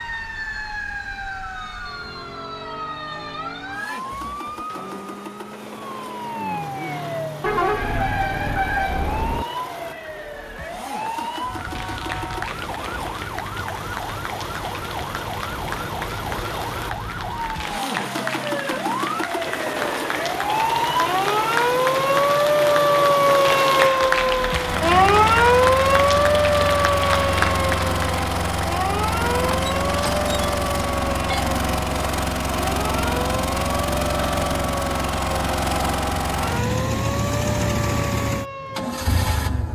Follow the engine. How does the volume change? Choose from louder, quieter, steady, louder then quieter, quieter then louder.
louder.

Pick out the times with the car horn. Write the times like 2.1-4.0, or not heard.
7.4-9.4.